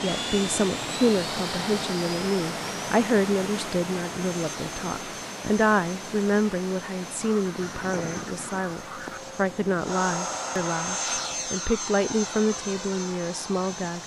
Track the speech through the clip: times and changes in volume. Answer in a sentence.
You can hear the speech from 0.0 to 14.0 s, at a steady volume.